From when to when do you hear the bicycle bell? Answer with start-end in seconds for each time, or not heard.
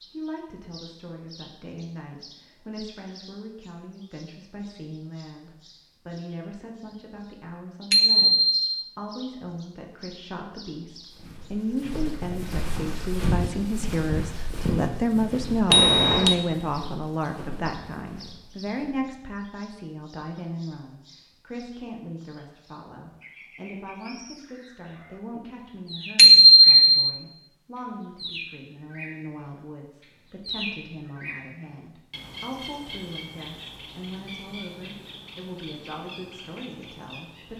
7.9-8.6, 15.7-16.4, 26.1-27.0.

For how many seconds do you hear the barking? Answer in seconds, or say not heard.
not heard.